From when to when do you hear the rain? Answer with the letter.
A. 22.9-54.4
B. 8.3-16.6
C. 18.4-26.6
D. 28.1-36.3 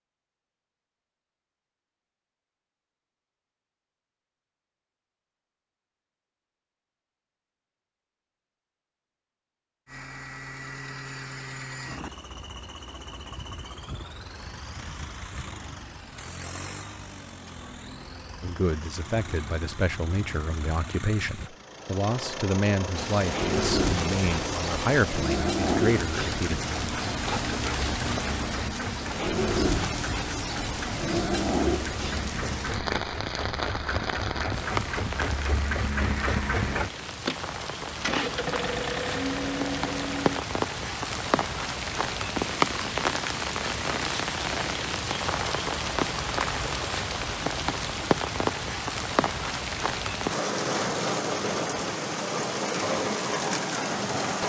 A.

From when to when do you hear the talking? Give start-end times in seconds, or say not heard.
18.4-26.6.